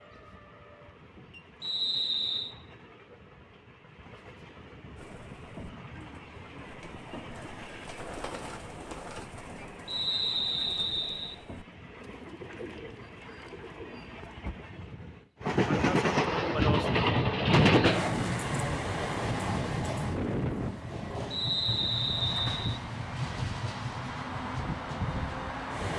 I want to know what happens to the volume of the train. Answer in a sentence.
The volume of the train goes up, then down.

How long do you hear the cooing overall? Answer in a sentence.
The cooing can be heard for 10 seconds in total.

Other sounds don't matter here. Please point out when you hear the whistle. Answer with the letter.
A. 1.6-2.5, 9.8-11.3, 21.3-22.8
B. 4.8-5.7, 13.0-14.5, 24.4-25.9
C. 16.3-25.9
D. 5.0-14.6
A.